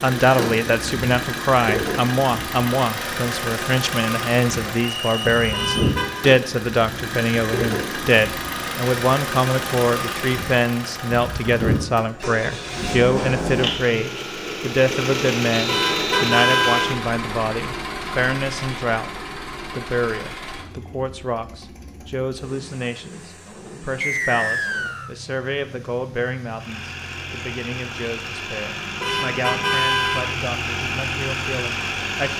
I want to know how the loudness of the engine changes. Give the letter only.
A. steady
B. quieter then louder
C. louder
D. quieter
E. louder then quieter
B.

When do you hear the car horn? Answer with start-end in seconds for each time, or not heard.
5.5-6.2, 15.7-17.0, 29.0-30.4.